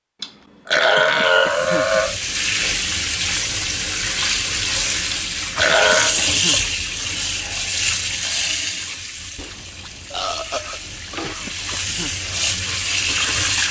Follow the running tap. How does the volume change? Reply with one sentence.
The volume of the running tap goes down, then up.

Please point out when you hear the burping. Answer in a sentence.
You can hear the burping from 0.2 to 2.1 s, from 5.1 to 6.2 s and from 9.3 to 11.3 s.